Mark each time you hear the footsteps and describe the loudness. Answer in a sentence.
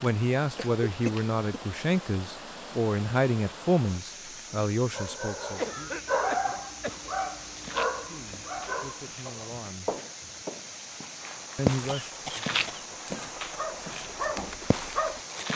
The footsteps can be heard from 6.8 to 15.5 s, getting louder then quieter.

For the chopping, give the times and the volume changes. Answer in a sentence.
The chopping can't be heard in this clip.